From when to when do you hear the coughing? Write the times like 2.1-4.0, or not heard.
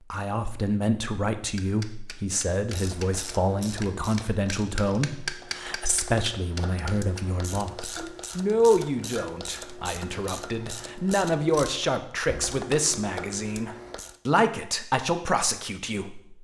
not heard.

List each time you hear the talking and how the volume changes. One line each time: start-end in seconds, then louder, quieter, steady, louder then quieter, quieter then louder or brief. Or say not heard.
0.1-16.3 steady.